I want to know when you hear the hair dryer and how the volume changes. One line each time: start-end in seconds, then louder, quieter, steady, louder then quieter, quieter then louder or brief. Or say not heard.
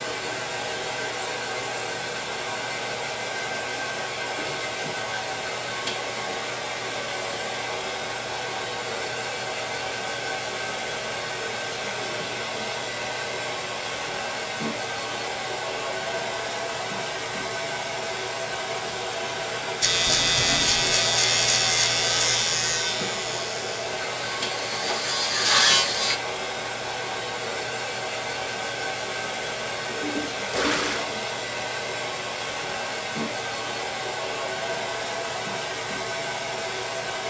0.0-37.2 steady.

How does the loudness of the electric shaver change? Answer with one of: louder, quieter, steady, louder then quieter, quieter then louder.
quieter then louder.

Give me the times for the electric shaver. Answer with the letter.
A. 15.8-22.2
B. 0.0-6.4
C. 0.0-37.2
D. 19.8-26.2
D.